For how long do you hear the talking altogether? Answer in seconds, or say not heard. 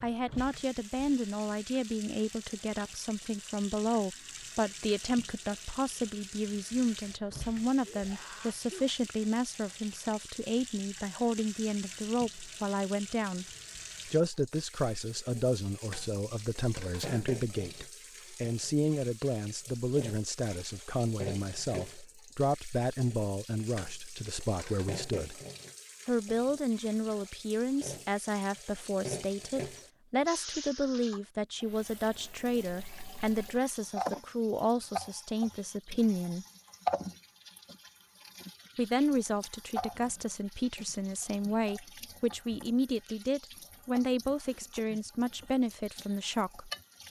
43 s.